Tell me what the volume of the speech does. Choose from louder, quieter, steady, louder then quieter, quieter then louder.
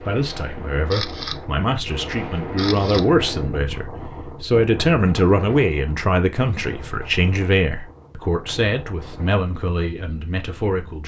louder then quieter.